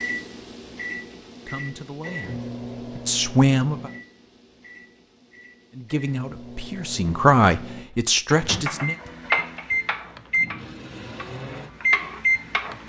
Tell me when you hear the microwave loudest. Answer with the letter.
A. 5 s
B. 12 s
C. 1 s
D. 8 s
B.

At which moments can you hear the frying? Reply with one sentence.
The frying can be heard from 8.6 to 12.8 s.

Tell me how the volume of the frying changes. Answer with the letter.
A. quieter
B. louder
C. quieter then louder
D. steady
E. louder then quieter
C.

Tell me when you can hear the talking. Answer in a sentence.
You can hear the talking from 1.4 to 3.9 s and from 5.7 to 8.9 s.